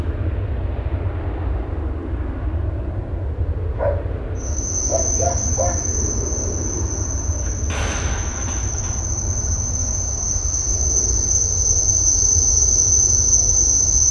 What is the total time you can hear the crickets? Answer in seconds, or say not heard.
10 s.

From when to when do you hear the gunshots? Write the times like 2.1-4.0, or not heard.
7.4-9.0.